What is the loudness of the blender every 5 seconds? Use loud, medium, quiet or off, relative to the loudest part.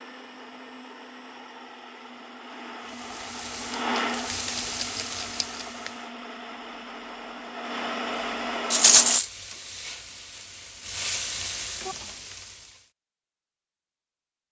loud, loud, off.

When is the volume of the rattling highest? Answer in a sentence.
The loudest moment of the rattling is at 9 seconds.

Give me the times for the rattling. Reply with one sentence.
You can hear the rattling from 3.7 to 5.7 s and from 8.7 to 9.2 s.